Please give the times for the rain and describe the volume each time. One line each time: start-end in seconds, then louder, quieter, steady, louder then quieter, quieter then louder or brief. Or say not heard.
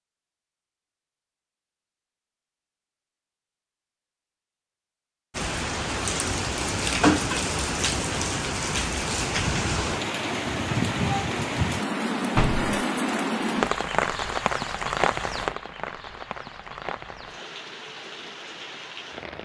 5.3-19.3 quieter.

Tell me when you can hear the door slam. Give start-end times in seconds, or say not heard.
12.3-12.8.